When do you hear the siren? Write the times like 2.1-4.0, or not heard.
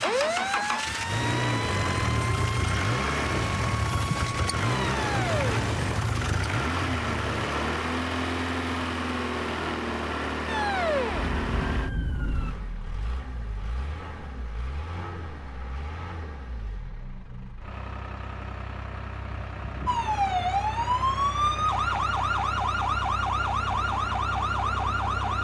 0.0-5.5, 10.4-12.6, 19.9-25.3.